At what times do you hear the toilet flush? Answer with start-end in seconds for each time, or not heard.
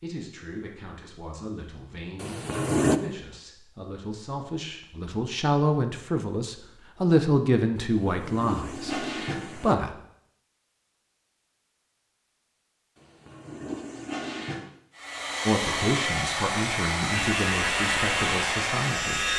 2.2-3.0, 7.8-9.8, 12.9-14.7.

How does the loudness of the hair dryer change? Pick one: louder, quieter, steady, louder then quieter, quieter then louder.
steady.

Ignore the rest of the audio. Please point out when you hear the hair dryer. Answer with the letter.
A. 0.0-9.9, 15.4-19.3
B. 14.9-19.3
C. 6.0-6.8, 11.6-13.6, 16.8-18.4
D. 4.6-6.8
B.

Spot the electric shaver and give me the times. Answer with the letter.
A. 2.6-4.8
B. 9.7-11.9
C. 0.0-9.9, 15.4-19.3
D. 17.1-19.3
D.